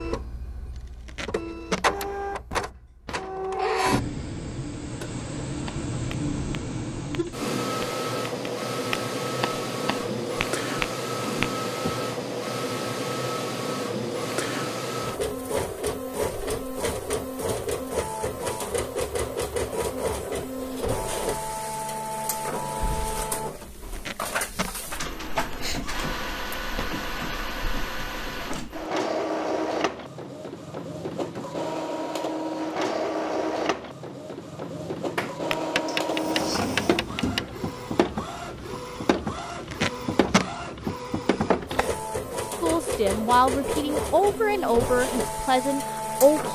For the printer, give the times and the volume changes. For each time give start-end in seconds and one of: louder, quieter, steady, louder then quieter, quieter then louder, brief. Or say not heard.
0.0-46.5 steady.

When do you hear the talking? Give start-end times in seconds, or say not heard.
42.6-46.5.